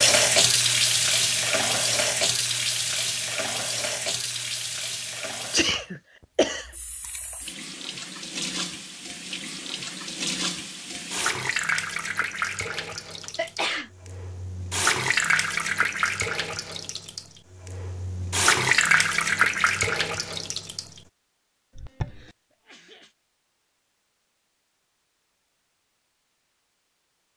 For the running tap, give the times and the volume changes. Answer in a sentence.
You can hear the running tap from 0.0 to 20.9 s, getting quieter then louder.